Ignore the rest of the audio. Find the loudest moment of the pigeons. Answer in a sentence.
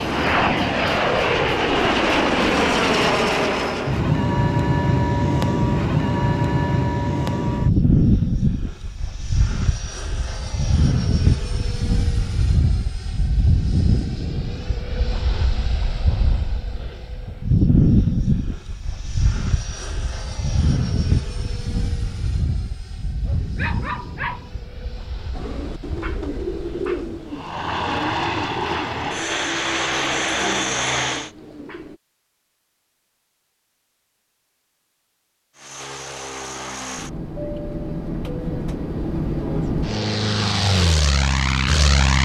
The volume of the pigeons peaks at 27 seconds.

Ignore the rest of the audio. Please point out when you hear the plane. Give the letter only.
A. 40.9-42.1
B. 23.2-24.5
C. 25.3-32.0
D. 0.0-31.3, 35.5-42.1
D.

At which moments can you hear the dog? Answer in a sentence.
The dog can be heard from 23.2 to 24.5 s.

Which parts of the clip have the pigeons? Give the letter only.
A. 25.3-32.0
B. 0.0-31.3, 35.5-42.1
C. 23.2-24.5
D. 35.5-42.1
A.